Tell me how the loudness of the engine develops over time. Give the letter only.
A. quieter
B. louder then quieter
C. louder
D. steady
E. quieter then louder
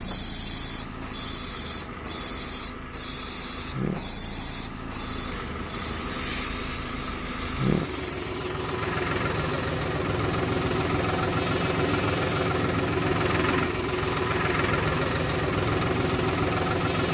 C.